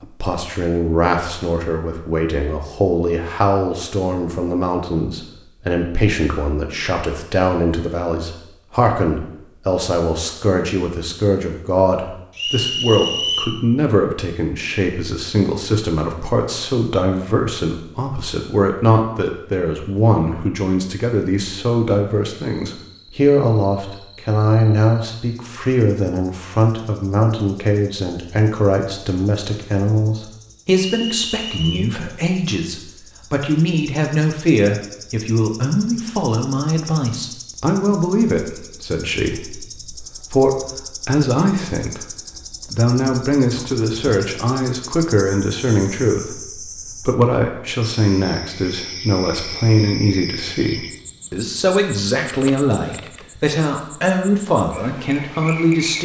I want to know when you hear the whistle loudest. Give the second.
13 s.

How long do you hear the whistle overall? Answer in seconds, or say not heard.
2 s.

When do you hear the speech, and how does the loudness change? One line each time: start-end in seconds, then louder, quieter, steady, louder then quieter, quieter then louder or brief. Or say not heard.
0.0-56.0 steady.